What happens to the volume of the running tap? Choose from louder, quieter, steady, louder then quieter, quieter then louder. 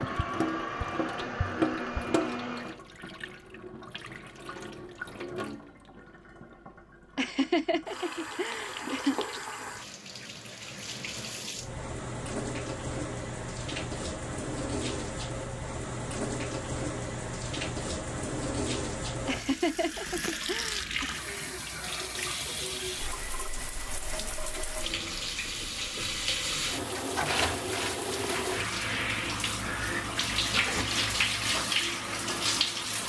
louder.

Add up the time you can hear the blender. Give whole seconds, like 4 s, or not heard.
3 s.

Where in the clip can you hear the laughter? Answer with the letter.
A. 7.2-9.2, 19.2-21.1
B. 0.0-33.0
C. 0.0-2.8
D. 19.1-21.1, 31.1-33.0
A.